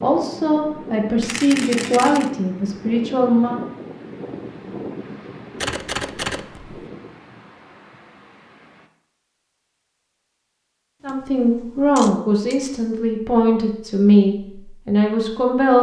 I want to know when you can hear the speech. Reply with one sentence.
The speech can be heard from 0.0 to 3.6 s and from 11.0 to 15.7 s.